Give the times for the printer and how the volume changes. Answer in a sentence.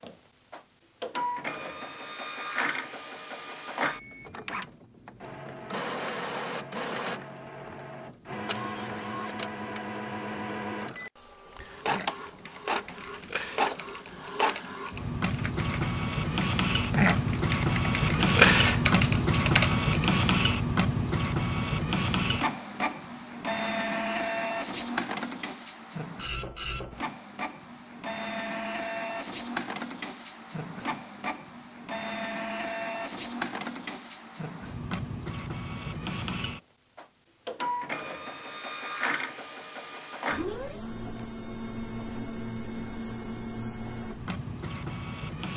You can hear the printer from 0.0 to 45.5 s, getting louder then quieter.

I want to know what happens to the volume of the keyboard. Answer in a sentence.
The volume of the keyboard goes up.